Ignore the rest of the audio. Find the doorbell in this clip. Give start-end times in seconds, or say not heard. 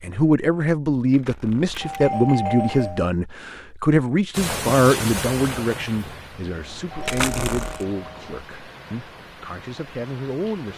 1.7-3.1, 6.5-8.4.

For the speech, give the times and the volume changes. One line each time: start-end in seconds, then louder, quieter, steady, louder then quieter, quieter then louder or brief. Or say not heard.
0.0-10.7 quieter.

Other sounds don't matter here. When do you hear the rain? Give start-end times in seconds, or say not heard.
4.3-10.7.